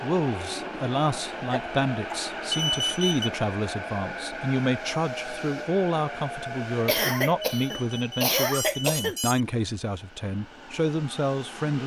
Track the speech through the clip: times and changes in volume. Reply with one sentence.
You can hear the speech from 0.0 to 11.8 s, at a steady volume.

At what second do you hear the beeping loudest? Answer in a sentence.
The loudest moment of the beeping is at 3 seconds.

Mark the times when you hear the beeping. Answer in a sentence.
You can hear the beeping from 2.5 to 3.3 s and from 7.4 to 9.4 s.